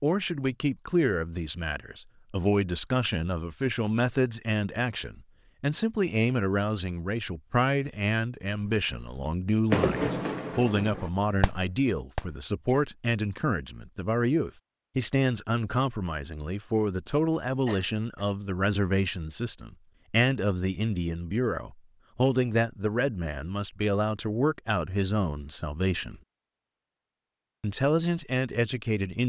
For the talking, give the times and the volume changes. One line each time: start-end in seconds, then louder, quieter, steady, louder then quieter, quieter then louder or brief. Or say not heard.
0.0-26.2 steady
27.6-29.2 brief.